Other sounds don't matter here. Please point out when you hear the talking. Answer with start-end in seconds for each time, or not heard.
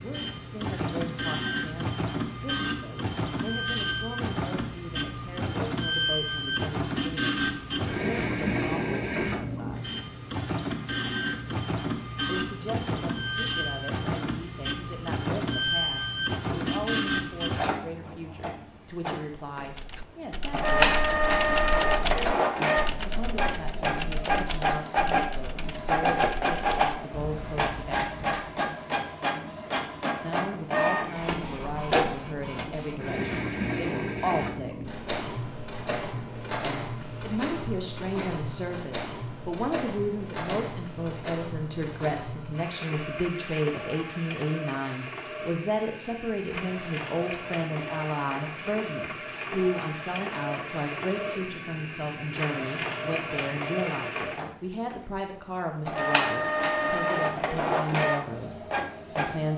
0.0-9.9, 12.2-20.9, 22.9-28.4, 30.1-34.9, 37.2-59.5.